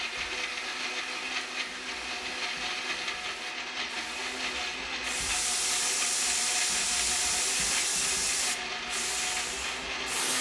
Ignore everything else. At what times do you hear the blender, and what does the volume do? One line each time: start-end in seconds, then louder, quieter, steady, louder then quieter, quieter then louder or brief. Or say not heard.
0.0-10.3 steady.